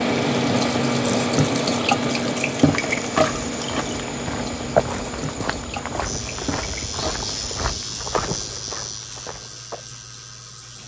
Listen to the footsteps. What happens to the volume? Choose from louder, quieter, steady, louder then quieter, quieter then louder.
louder then quieter.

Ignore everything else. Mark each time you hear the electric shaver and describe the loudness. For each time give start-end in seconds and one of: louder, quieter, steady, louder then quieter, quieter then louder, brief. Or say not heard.
6.0-10.8 quieter.